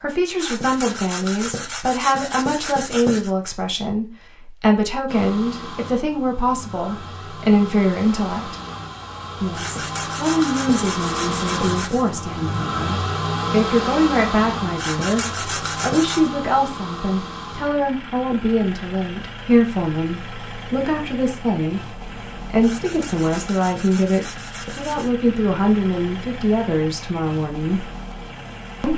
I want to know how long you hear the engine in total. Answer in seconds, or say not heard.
24 s.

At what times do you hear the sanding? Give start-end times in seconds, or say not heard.
0.3-3.3, 9.5-12.1, 14.8-16.3, 22.6-25.1.